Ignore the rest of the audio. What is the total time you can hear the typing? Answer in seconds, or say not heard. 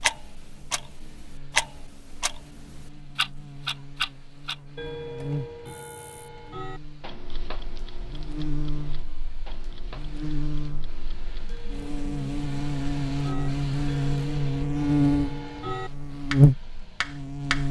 not heard.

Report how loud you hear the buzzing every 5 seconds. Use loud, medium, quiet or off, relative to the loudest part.
quiet, quiet, medium, loud.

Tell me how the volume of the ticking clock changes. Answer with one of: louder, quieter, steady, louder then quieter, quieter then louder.
quieter then louder.